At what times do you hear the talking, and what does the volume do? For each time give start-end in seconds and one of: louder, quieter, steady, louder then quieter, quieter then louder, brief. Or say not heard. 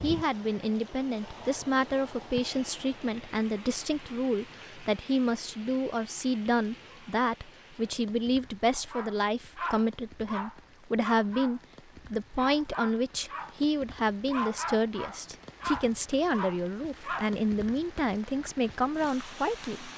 0.0-19.9 steady.